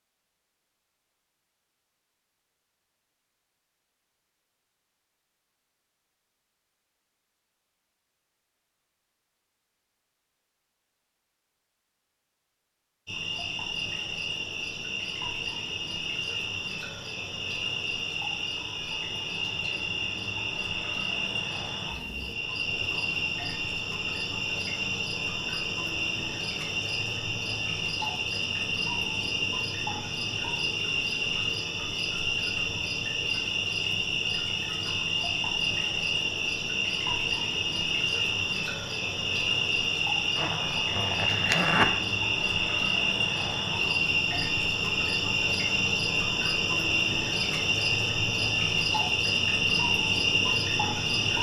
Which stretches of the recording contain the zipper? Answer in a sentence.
You can hear the zipper from 40.4 to 42.0 s.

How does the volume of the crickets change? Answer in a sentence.
The loudness of the crickets goes up.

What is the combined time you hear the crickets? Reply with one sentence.
The crickets can be heard for 38 seconds in total.